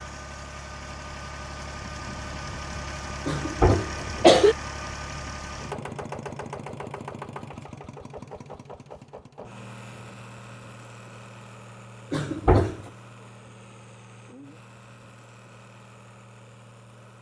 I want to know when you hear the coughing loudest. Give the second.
4 s.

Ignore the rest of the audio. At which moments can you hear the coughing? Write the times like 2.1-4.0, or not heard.
3.2-4.5, 12.1-12.9.